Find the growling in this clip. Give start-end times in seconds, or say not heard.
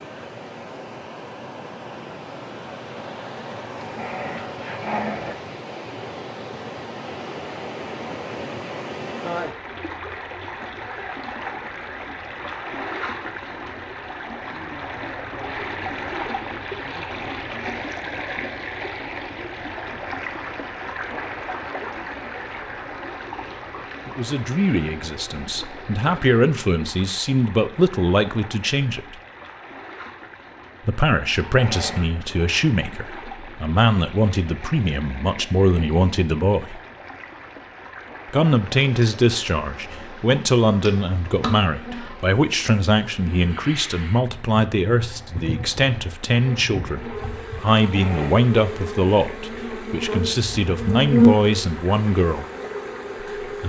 3.8-5.3, 31.4-32.1, 47.8-48.4.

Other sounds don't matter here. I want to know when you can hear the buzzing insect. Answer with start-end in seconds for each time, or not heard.
38.8-53.6.